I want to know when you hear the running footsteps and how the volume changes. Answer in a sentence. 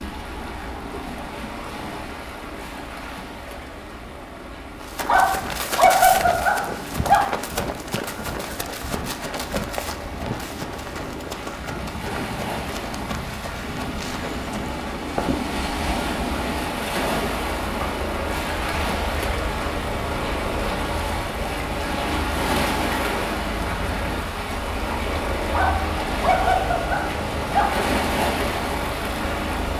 The running footsteps can be heard from 4.8 to 15.6 s, getting quieter.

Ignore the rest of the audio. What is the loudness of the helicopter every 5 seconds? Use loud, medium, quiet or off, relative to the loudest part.
medium, medium, medium, loud, loud, loud.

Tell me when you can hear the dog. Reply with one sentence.
You can hear the dog from 5.0 to 7.2 s and from 25.5 to 27.8 s.